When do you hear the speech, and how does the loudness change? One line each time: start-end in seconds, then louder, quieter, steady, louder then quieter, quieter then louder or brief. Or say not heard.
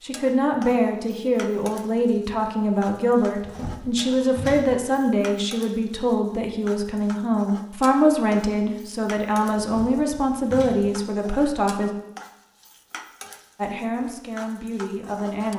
0.0-11.9 steady
13.6-15.5 brief.